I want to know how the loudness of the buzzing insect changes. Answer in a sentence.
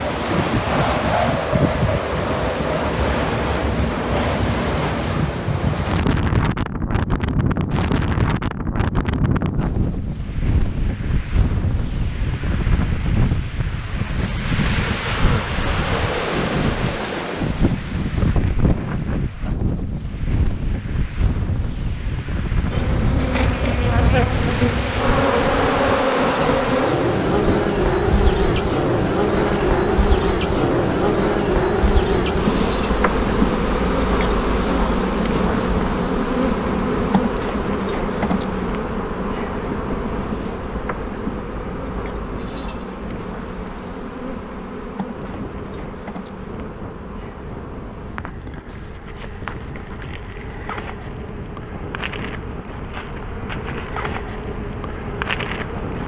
The loudness of the buzzing insect goes down.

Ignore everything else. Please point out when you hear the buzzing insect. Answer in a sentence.
You can hear the buzzing insect from 22.7 to 56.0 s.